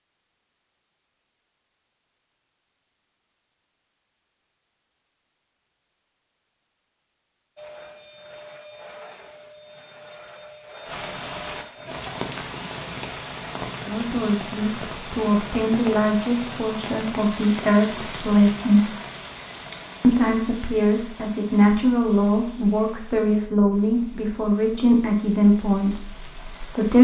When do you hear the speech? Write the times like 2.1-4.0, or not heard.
13.8-18.9, 20.0-26.9.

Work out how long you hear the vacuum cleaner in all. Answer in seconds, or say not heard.
4 s.